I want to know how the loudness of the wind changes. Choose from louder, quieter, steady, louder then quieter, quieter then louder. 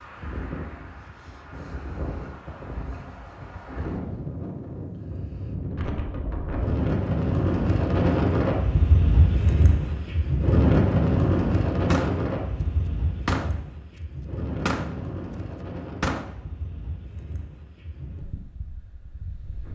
louder then quieter.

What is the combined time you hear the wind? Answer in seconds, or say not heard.
20 s.